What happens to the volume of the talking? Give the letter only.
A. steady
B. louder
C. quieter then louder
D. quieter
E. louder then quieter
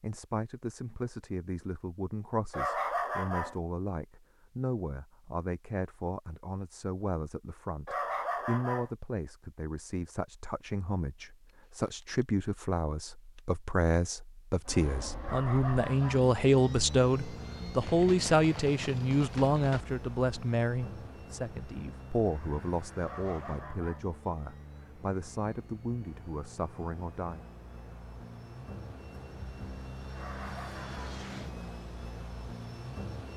E.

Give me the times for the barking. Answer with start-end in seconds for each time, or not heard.
2.5-3.5, 7.8-8.9, 15.2-16.2, 23.0-24.1, 30.1-31.2.